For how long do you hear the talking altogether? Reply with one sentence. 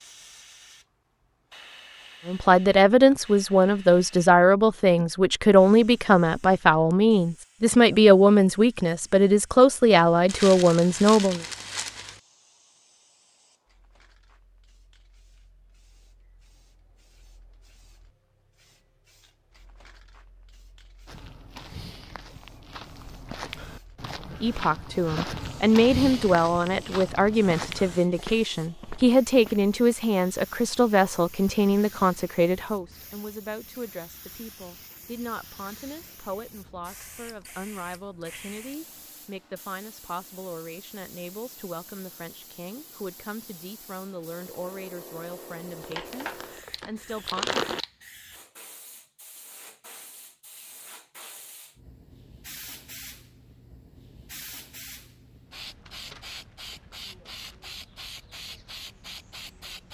The talking can be heard for 32 seconds in total.